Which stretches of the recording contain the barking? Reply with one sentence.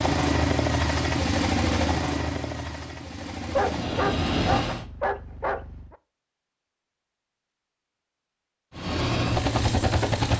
The barking can be heard from 3.5 to 6.0 s.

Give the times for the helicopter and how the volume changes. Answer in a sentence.
The helicopter can be heard from 0.0 to 4.8 s, getting quieter then louder; and briefly from 8.7 to 10.3 s.